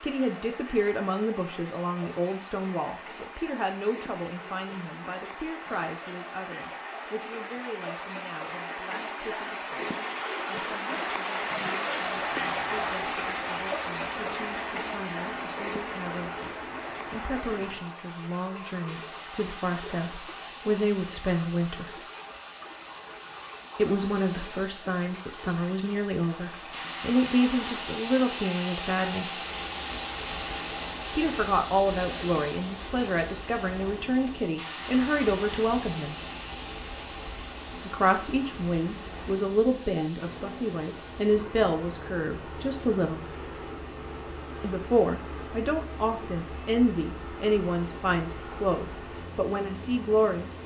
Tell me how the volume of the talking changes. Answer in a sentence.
The loudness of the talking goes down, then up.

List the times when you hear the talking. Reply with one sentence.
You can hear the talking from 0.0 to 22.0 s, from 23.8 to 29.4 s, from 31.1 to 36.1 s, from 37.8 to 43.3 s and from 44.6 to 50.5 s.